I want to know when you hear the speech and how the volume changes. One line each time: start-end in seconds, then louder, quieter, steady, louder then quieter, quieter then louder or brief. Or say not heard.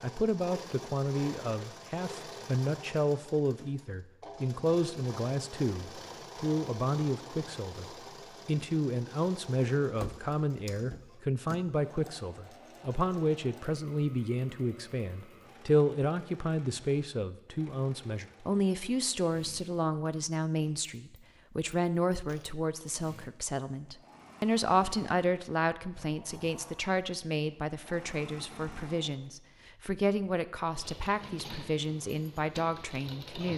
0.0-7.8 steady
8.4-33.5 steady.